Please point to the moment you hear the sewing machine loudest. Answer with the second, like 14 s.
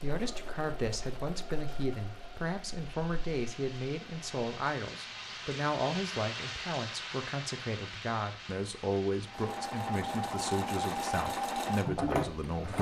12 s.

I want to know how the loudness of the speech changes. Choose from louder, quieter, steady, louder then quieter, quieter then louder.
steady.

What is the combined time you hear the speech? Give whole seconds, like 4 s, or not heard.
13 s.